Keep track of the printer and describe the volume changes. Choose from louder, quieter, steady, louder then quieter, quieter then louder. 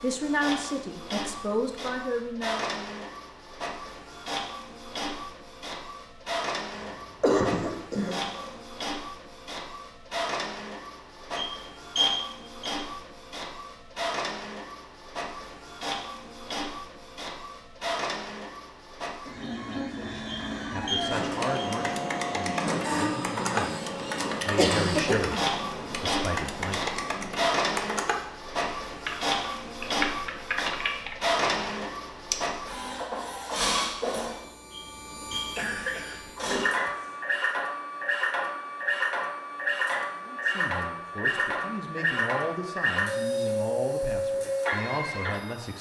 louder.